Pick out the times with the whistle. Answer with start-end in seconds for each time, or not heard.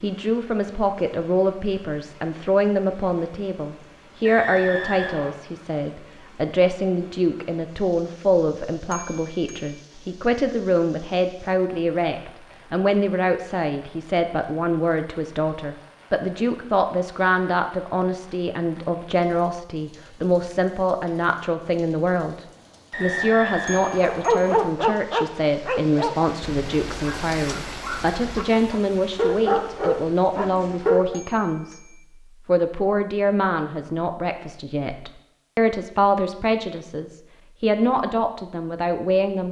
4.2-5.3, 22.9-24.6.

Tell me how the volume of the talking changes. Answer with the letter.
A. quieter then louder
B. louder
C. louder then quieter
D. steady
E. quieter
D.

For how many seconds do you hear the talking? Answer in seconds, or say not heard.
39 s.